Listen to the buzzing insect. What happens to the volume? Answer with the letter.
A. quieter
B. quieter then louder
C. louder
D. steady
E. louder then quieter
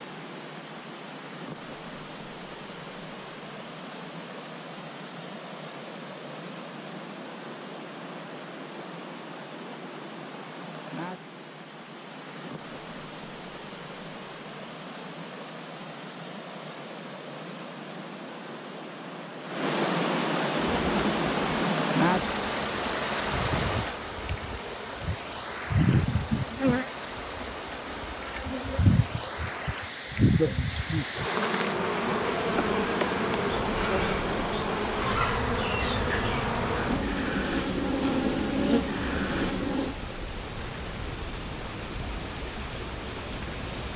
C.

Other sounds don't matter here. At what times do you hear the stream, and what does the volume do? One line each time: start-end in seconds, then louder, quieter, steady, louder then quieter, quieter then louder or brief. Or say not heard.
0.0-43.9 louder then quieter.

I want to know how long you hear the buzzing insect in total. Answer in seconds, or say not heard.
19 s.